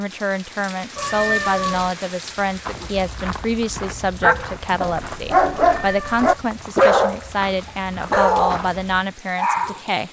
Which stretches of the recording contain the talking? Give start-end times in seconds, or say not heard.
0.0-10.0.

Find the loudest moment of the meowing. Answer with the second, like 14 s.
1 s.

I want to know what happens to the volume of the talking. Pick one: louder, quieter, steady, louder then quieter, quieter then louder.
steady.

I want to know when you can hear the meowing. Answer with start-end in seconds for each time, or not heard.
0.9-1.9, 5.7-6.5.